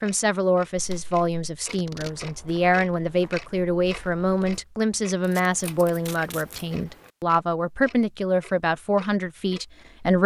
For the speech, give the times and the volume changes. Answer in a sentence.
The speech can be heard from 0.0 to 10.2 s, at a steady volume.